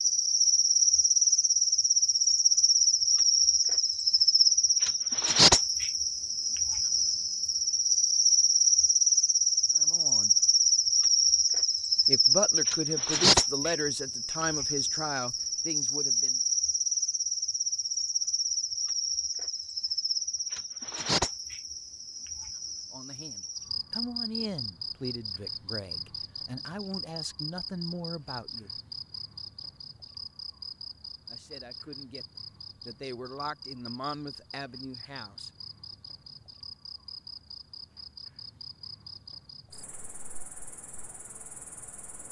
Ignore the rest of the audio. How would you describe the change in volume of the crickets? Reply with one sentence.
The volume of the crickets goes down.